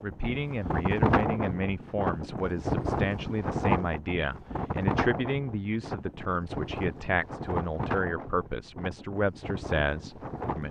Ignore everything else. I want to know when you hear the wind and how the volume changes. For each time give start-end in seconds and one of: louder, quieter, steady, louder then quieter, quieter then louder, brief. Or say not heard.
0.0-10.6 quieter.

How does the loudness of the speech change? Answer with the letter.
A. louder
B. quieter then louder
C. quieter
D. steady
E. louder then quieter
D.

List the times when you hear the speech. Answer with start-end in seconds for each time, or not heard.
0.0-10.6.